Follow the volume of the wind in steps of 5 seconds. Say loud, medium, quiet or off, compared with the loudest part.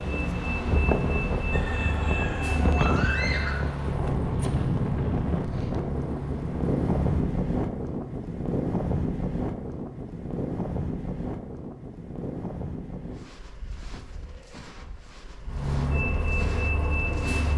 loud, loud, medium, quiet.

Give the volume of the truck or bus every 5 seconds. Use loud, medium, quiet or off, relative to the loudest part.
loud, medium, off, loud.